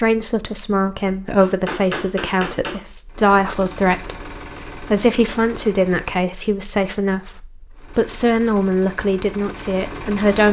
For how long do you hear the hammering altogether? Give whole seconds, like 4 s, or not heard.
2 s.